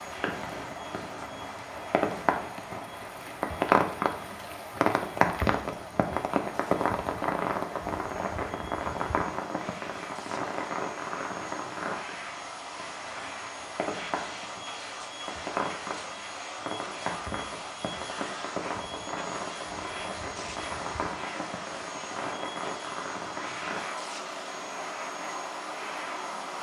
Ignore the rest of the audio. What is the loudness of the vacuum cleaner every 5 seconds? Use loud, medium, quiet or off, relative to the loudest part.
medium, medium, loud, loud, loud, loud.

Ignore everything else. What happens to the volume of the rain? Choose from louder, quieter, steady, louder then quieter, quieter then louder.
quieter.